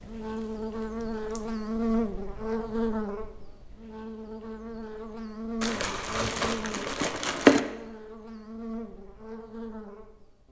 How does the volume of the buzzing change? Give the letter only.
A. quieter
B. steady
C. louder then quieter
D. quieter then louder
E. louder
A.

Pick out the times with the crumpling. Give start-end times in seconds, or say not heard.
0.3-1.4, 5.6-7.6.